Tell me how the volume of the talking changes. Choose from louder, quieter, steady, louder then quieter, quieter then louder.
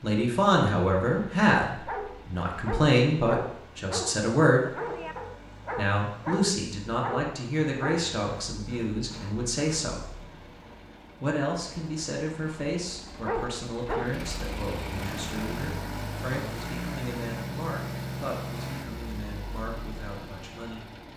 quieter.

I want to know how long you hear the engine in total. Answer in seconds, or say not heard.
21 s.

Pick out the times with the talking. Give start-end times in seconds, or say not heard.
0.0-4.7, 5.8-10.1, 11.2-20.9.